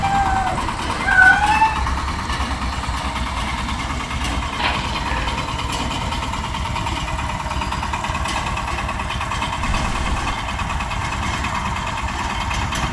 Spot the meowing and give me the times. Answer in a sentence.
The meowing can be heard from 0.0 to 1.8 s, from 4.5 to 5.5 s and from 9.6 to 10.4 s.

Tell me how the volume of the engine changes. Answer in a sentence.
The loudness of the engine stays about the same.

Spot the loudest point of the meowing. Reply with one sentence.
The volume of the meowing peaks at 1 second.